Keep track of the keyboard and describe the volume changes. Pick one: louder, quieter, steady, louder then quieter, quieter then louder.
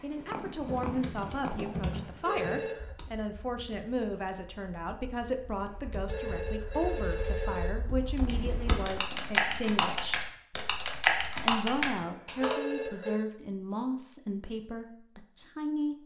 quieter then louder.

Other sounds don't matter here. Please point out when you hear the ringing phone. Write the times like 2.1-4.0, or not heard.
2.0-2.9, 5.7-7.7, 12.0-13.2.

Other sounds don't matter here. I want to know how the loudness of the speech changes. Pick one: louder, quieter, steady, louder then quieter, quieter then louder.
steady.